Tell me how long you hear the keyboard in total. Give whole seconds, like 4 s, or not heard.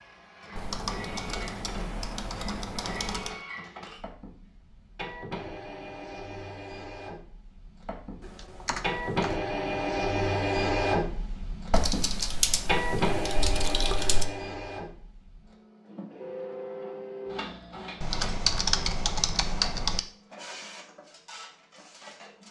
9 s.